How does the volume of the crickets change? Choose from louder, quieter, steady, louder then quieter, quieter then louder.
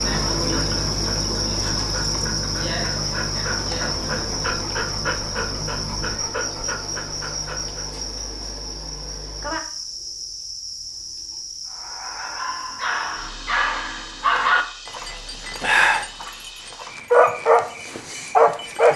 quieter.